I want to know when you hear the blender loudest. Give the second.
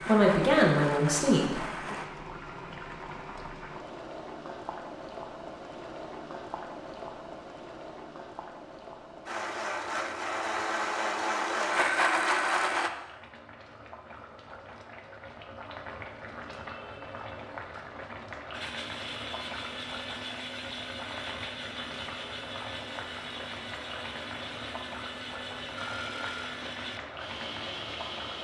12 s.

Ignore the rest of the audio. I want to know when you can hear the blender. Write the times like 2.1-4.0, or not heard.
0.0-2.1, 9.2-12.9, 18.5-28.3.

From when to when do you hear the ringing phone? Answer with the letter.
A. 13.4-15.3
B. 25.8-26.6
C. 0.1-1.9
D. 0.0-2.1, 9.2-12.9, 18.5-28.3
B.